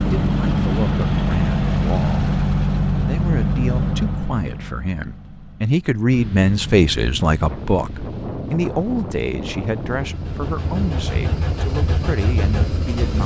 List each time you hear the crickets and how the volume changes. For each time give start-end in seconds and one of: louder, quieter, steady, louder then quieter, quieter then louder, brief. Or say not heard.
not heard.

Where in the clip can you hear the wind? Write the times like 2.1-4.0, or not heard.
6.1-13.2.